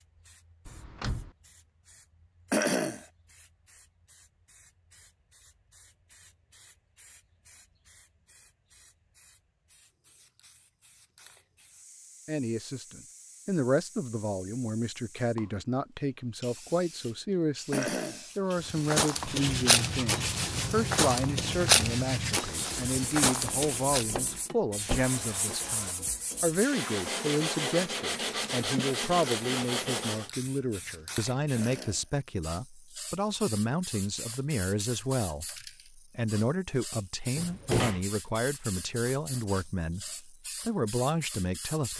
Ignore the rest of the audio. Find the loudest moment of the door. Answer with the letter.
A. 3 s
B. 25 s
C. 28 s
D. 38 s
D.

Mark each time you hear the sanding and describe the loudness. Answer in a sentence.
The sanding can be heard from 19.1 to 30.3 s, getting quieter then louder.